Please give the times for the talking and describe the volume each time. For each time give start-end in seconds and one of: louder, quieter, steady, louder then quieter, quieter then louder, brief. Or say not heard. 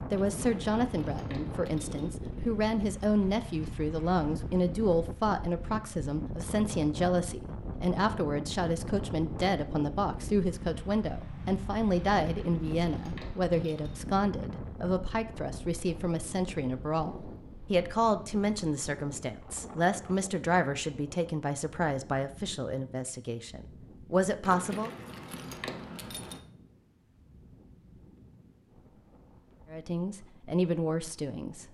0.1-24.9 steady
29.7-31.6 brief.